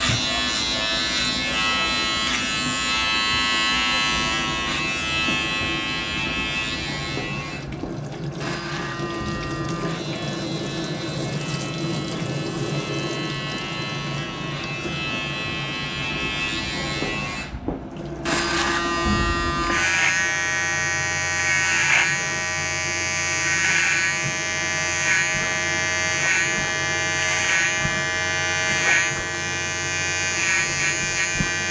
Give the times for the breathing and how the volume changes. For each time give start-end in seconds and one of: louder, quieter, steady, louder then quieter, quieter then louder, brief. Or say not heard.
not heard.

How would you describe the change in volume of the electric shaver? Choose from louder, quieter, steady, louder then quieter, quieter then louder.
quieter then louder.